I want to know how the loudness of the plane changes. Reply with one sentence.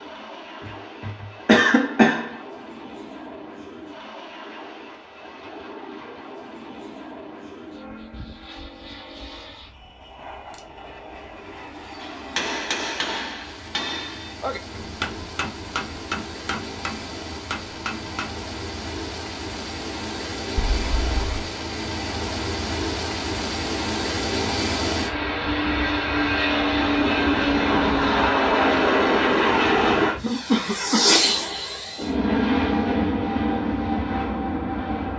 The volume of the plane goes up.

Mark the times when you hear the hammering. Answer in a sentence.
The hammering can be heard from 12.0 to 18.3 s.